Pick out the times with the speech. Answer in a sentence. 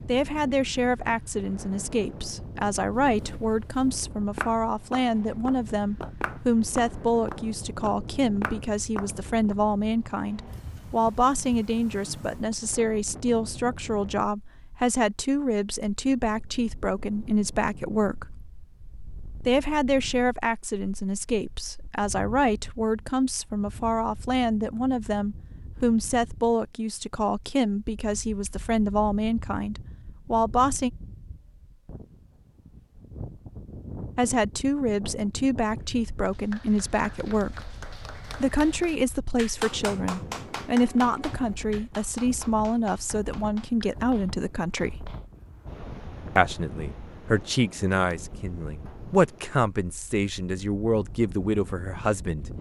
You can hear the speech from 0.1 to 18.4 s, from 19.4 to 30.9 s, from 34.1 to 37.7 s, from 38.4 to 45.1 s and from 46.4 to 52.5 s.